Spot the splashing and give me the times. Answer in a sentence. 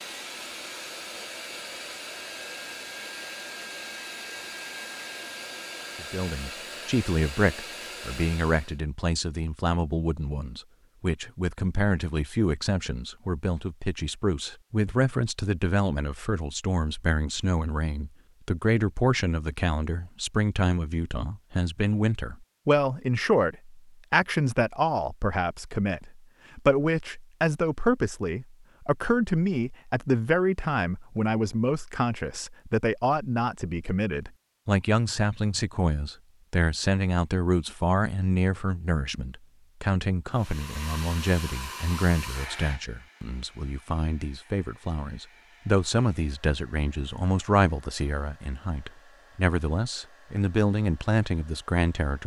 The splashing can't be heard in this clip.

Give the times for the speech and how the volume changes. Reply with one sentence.
The speech can be heard from 6.0 to 52.2 s, at a steady volume.